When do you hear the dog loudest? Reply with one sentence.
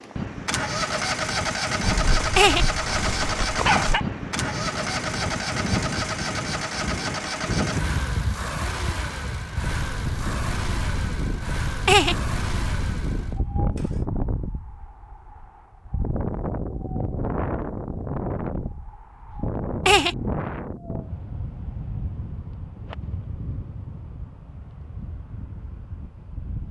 The loudest moment of the dog is at 4 seconds.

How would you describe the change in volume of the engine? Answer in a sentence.
The volume of the engine goes down.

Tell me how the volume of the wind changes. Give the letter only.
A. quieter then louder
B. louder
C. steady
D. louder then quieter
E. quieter
E.